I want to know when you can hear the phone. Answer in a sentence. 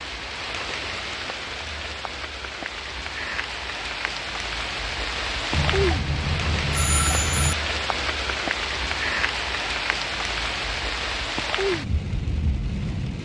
The phone can be heard from 5.5 to 7.5 s.